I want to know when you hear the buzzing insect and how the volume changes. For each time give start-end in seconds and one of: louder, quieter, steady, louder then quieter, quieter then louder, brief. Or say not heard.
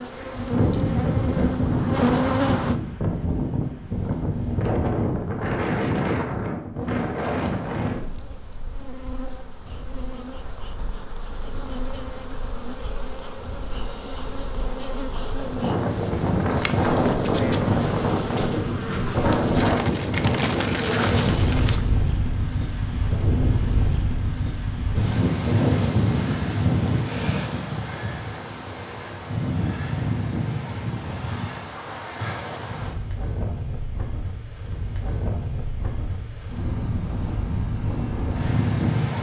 0.0-2.8 brief
6.8-21.9 louder.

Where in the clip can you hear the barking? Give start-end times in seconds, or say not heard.
not heard.